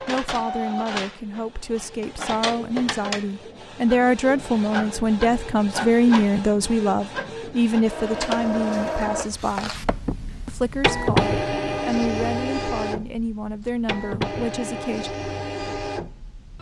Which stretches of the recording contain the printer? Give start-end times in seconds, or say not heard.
0.0-16.5.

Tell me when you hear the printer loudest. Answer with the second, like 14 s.
11 s.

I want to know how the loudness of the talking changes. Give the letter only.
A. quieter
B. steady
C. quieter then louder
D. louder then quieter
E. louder
D.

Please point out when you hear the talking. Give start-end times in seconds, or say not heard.
0.1-9.8, 10.4-15.1.